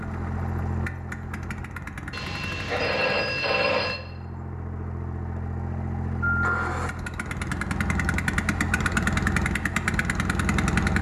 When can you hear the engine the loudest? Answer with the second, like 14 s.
9 s.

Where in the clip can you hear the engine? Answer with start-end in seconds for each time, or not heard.
0.0-10.9.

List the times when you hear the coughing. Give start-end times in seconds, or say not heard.
not heard.